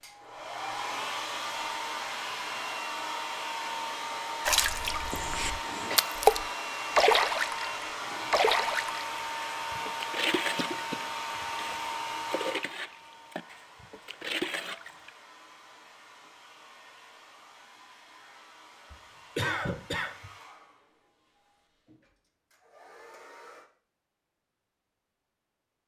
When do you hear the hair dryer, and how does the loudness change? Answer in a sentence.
The hair dryer can be heard from 0.0 to 23.7 s, getting quieter.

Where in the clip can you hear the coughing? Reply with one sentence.
The coughing can be heard from 5.1 to 6.0 s, from 10.6 to 11.0 s and from 18.9 to 20.3 s.